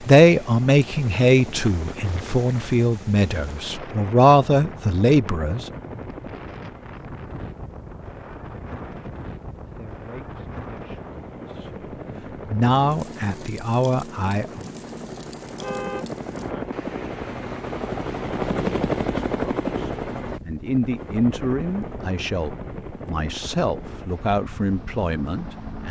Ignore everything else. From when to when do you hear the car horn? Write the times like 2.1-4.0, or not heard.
15.4-16.1.